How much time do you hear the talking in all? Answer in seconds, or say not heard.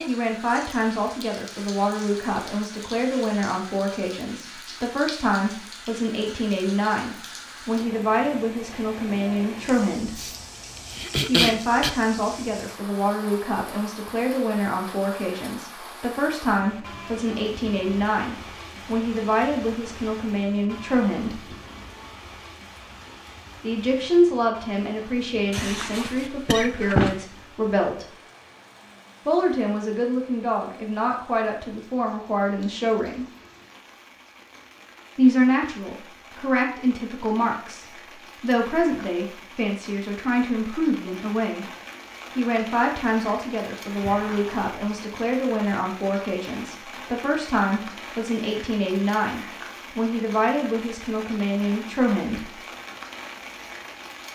46 s.